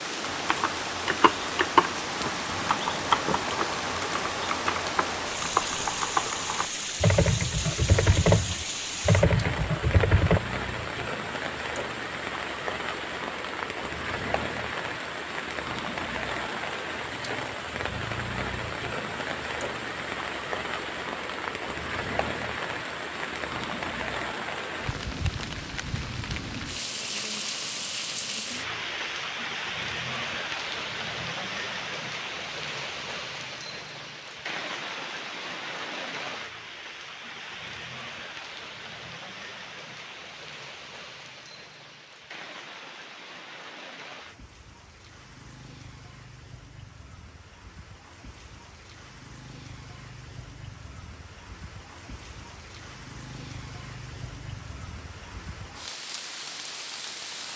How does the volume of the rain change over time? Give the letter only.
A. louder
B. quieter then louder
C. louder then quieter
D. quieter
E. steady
D.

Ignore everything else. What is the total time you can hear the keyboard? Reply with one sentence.
You can hear the keyboard for 10 seconds altogether.